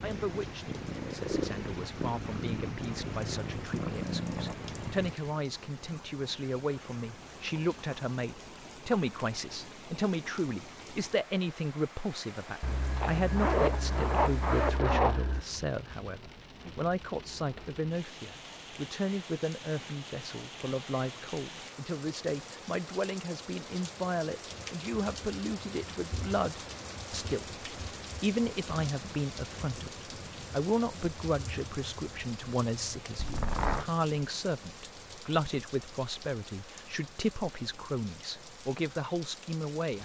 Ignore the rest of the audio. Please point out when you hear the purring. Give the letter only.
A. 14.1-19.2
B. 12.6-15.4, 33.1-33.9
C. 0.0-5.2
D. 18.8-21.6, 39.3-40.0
C.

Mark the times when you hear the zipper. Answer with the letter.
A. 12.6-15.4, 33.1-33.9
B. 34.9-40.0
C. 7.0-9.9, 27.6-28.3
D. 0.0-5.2
A.